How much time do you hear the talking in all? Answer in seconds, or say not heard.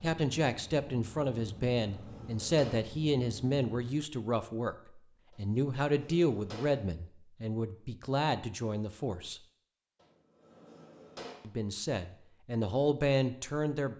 12 s.